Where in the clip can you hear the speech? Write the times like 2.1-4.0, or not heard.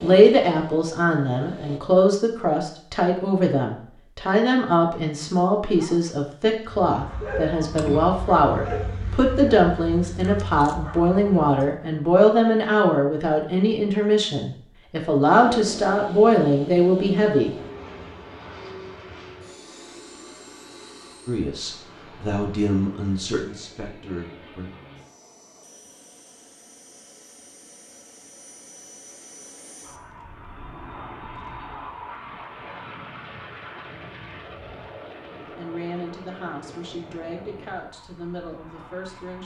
0.0-17.6, 21.2-24.7, 35.4-39.4.